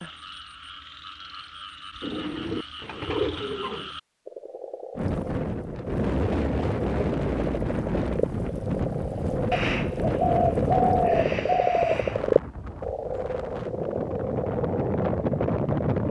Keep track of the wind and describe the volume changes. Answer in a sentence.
The loudness of the wind goes down, then up.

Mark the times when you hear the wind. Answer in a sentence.
You can hear the wind from 5.0 to 16.0 s.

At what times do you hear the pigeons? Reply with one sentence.
The pigeons can be heard from 2.0 to 3.9 s and from 9.5 to 12.2 s.